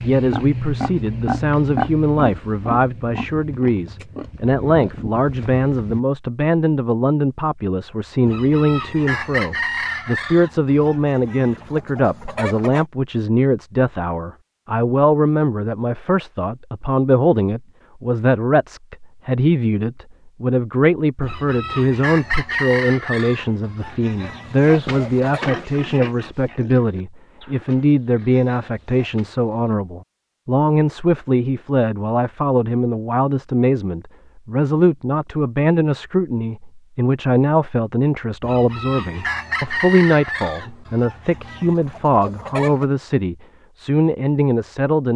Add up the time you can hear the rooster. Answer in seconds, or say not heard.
13 s.